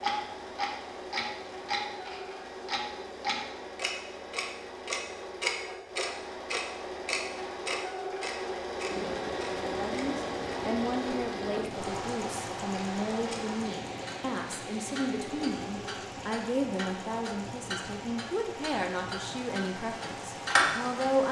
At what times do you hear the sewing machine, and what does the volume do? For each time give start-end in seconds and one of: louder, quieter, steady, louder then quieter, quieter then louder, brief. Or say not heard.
0.0-21.1 louder then quieter.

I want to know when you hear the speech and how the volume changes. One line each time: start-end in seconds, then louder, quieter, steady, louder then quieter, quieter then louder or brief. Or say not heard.
9.6-21.2 steady.